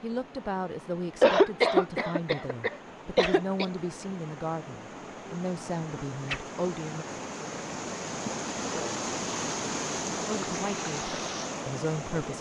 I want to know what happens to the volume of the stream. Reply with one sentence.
The loudness of the stream goes up.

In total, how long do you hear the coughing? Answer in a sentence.
You can hear the coughing for 3 seconds altogether.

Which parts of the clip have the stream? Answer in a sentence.
The stream can be heard from 0.0 to 12.3 s.